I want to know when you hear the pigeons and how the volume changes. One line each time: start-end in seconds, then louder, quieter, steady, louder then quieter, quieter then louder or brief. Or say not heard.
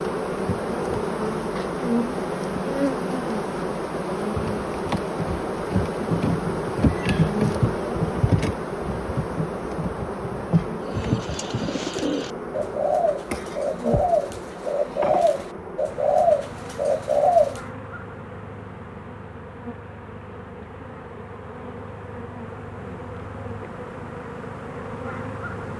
10.8-17.6 louder.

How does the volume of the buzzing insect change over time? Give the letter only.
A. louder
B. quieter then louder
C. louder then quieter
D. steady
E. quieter
E.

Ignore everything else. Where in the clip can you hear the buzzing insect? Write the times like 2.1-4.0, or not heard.
0.0-25.7.